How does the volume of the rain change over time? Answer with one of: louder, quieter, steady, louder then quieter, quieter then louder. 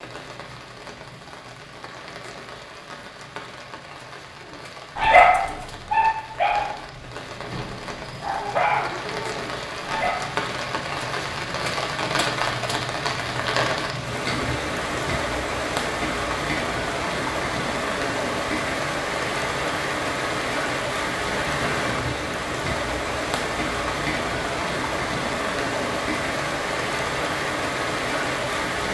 louder.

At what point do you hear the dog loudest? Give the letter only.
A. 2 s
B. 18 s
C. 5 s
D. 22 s
C.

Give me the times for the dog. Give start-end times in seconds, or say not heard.
5.0-10.3.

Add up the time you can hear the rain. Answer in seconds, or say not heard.
29 s.